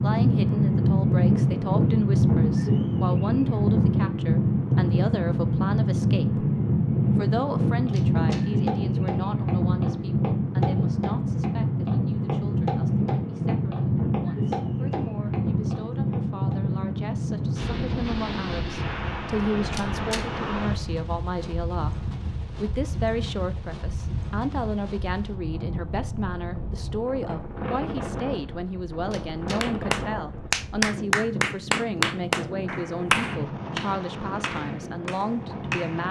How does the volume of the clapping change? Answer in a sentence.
The loudness of the clapping goes down.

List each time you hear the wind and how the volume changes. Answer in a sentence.
You can hear the wind from 0.0 to 36.0 s, getting quieter.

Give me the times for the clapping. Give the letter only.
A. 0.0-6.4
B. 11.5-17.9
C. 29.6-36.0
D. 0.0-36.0
C.